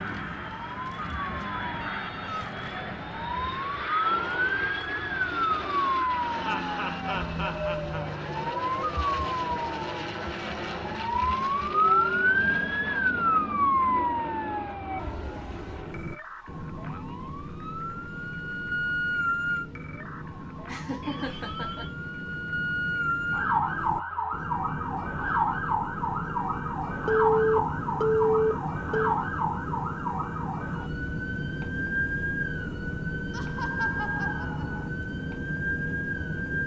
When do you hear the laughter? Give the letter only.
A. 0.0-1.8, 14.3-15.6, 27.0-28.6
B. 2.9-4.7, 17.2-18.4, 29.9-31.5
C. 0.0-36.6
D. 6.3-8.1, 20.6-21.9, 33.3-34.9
D.